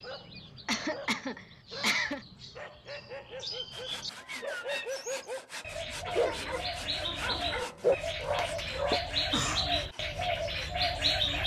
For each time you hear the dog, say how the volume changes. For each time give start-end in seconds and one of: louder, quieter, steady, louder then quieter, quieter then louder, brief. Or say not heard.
0.0-9.0 louder.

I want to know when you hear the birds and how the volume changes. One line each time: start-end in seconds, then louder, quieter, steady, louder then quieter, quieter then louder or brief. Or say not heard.
0.0-11.4 louder.